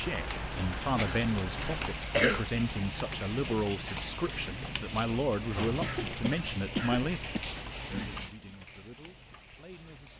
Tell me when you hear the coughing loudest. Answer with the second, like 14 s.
2 s.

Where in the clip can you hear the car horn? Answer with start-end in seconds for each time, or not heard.
not heard.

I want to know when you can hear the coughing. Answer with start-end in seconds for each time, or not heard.
0.9-2.5, 5.8-7.4.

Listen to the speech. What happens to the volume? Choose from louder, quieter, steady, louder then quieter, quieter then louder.
quieter.